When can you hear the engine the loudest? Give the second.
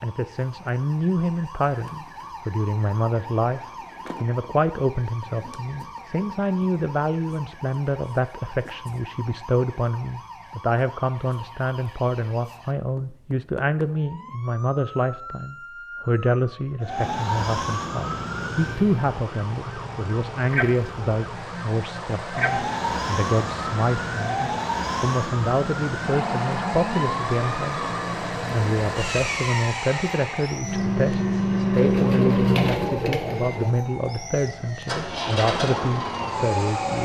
32 s.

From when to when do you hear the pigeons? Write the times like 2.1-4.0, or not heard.
31.7-33.8.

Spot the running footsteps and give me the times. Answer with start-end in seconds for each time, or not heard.
not heard.